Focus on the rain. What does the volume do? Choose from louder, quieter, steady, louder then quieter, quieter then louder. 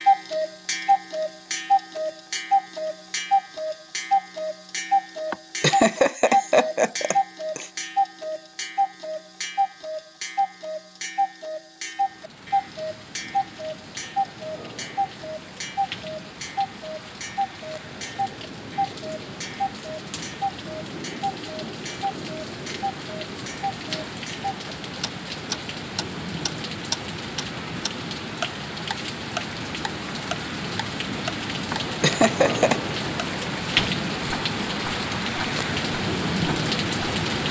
louder.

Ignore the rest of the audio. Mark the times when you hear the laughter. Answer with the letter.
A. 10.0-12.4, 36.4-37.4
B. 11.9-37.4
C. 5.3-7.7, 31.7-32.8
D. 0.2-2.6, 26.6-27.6
C.